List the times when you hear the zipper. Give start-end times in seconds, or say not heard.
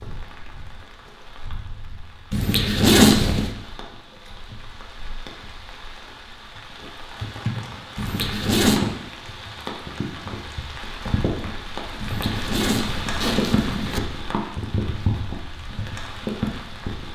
2.3-3.5, 8.0-8.8, 11.9-14.0.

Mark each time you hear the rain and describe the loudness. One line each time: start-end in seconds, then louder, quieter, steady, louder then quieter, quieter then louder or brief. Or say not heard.
0.0-17.1 louder.